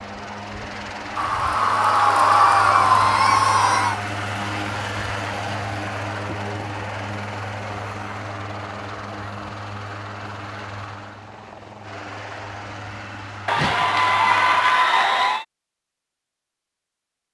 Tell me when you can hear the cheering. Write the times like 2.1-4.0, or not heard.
1.1-4.0, 13.4-15.4.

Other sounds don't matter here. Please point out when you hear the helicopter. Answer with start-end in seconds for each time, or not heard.
0.0-14.8.